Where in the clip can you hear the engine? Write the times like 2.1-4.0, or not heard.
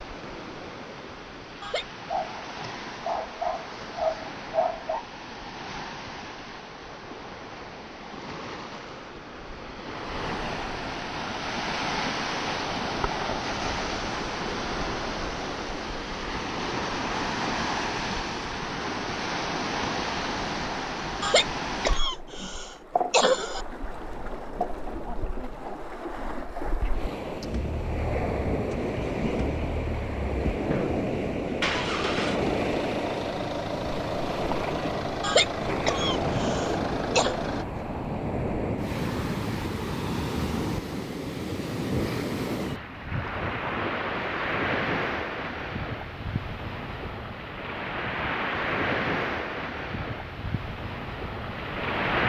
27.4-37.6.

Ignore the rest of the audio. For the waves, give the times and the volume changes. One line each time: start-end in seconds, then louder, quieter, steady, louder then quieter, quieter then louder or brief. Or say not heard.
0.0-52.2 louder.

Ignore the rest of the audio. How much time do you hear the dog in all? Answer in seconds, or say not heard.
3 s.